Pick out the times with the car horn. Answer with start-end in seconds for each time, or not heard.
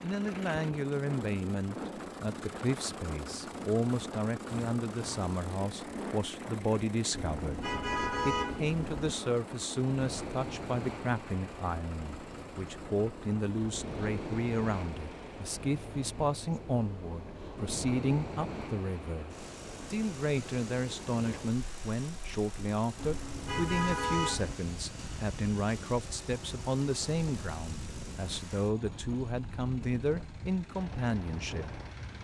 7.1-9.1, 22.9-24.6.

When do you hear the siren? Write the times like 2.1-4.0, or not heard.
not heard.